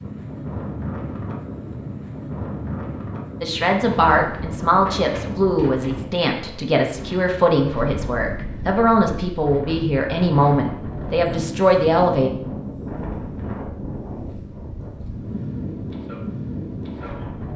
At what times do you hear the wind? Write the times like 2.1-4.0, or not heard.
0.0-17.5.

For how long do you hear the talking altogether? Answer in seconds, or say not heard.
9 s.